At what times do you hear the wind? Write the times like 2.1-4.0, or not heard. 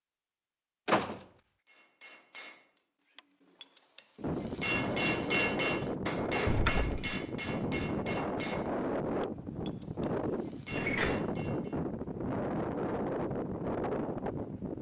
4.2-14.7.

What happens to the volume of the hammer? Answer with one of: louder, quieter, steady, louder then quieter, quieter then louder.
louder then quieter.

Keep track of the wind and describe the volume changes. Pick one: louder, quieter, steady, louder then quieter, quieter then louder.
steady.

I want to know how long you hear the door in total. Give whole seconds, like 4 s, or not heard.
2 s.